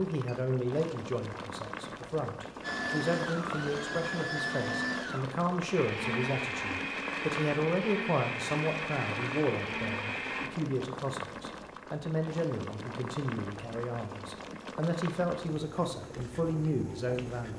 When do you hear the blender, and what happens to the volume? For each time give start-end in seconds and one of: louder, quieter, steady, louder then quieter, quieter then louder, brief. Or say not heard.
2.6-10.5 steady.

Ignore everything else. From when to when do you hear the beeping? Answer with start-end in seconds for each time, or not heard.
not heard.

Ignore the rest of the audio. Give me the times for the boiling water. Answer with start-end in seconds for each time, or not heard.
0.0-17.5.